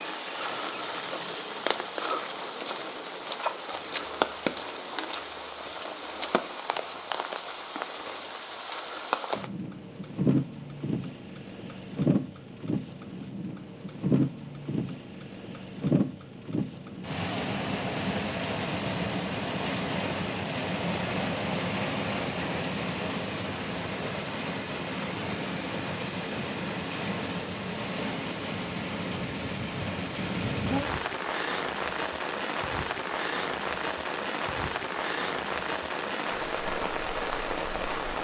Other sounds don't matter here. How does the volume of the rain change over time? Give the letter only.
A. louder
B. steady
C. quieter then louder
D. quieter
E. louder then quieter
B.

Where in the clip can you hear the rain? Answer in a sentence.
The rain can be heard from 0.0 to 38.1 s.